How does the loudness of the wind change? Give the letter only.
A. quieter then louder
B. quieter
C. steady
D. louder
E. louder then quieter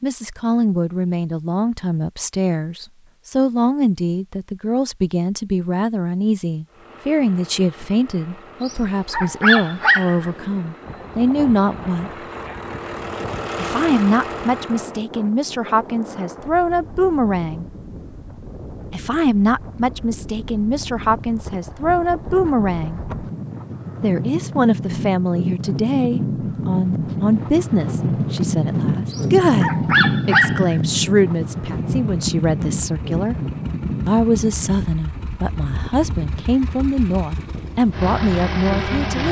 E.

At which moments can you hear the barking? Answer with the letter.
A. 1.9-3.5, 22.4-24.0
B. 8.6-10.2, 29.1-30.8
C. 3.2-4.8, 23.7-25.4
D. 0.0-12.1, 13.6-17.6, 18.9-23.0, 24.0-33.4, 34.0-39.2
B.